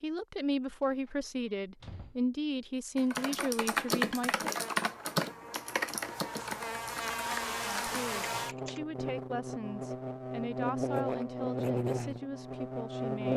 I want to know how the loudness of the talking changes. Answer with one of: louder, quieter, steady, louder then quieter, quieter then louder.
quieter.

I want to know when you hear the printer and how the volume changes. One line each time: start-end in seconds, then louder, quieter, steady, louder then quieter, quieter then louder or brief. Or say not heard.
not heard.